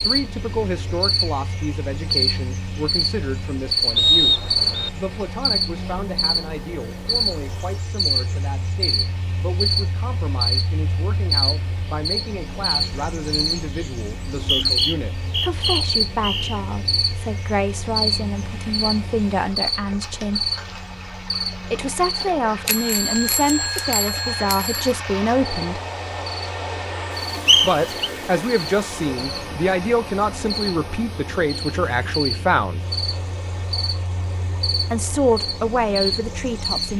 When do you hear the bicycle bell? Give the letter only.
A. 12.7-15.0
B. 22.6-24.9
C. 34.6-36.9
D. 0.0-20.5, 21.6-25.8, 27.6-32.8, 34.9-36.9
B.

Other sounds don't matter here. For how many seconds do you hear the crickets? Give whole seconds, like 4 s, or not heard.
37 s.